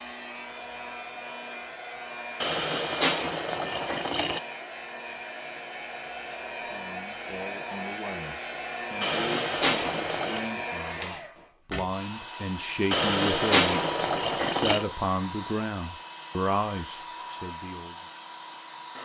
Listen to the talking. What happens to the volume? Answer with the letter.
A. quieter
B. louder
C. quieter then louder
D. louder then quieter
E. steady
B.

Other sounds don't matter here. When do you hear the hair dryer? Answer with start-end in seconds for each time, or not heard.
0.0-19.0.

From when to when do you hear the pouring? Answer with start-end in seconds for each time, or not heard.
2.4-4.4, 9.0-10.6, 12.9-14.8.